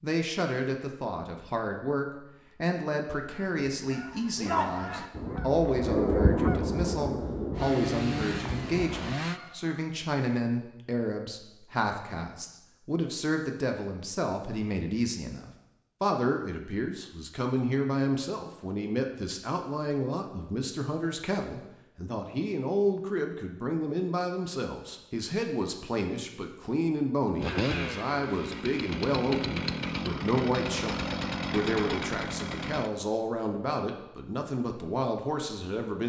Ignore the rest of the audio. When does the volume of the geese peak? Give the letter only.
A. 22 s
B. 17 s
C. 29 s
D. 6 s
D.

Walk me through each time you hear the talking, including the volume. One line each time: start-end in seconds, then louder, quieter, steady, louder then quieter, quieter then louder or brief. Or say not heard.
0.0-36.0 steady.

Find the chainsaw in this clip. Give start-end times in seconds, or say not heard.
7.5-9.4, 27.4-32.9.